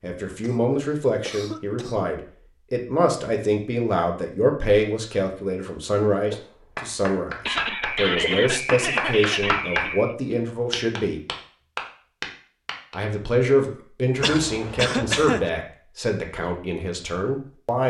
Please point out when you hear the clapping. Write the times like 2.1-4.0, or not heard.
6.3-12.9.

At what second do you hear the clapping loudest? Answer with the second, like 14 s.
10 s.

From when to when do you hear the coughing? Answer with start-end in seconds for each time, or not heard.
0.3-2.1, 7.5-10.2, 14.2-15.5.